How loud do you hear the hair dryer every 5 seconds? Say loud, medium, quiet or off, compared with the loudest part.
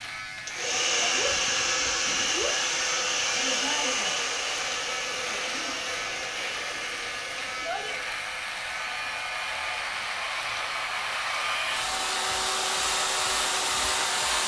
loud, medium, loud.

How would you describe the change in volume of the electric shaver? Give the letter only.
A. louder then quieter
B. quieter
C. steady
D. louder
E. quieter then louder
C.